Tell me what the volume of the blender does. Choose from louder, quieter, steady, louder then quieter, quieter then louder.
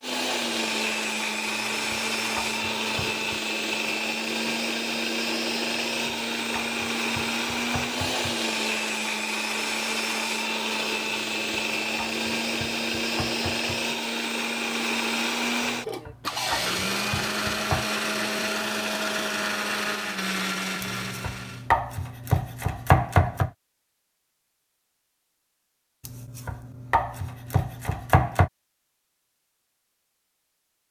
steady.